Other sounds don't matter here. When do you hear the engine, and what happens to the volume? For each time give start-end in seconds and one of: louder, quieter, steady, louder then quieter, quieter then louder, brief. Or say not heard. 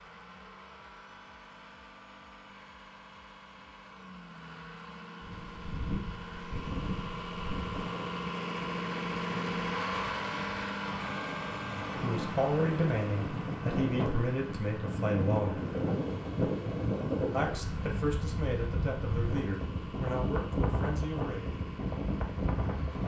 0.0-23.0 louder then quieter.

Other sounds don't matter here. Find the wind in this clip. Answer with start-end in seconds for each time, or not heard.
5.2-23.0.